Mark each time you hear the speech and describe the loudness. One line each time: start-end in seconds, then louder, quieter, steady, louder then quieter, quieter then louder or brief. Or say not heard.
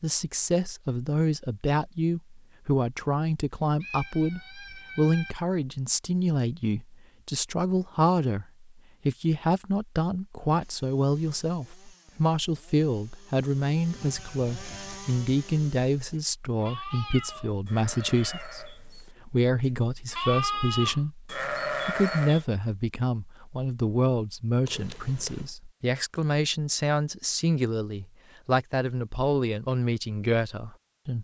0.0-31.2 steady.